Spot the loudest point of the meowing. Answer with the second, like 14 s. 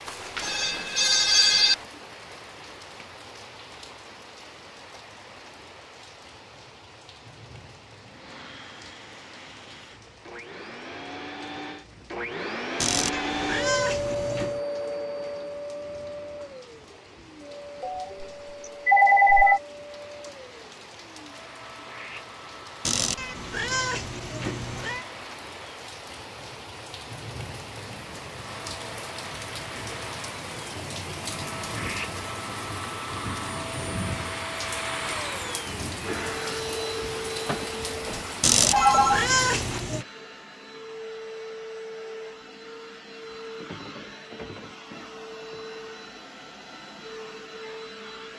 39 s.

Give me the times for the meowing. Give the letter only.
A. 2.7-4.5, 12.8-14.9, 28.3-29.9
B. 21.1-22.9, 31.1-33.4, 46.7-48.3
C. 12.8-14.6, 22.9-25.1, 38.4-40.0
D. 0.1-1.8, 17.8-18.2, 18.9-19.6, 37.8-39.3
C.